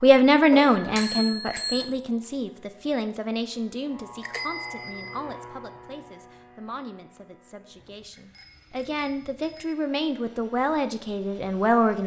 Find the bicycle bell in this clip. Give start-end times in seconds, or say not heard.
0.5-1.9, 4.2-5.2, 8.1-9.8.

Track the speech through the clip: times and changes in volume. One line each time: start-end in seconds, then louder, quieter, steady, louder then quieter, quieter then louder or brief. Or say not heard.
0.0-12.0 quieter then louder.